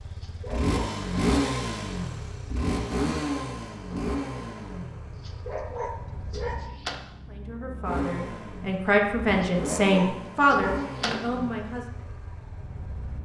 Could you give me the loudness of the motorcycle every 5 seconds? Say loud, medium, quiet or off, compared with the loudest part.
loud, medium, medium.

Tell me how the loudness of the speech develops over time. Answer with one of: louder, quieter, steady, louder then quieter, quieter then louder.
louder then quieter.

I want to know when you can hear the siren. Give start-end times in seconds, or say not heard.
not heard.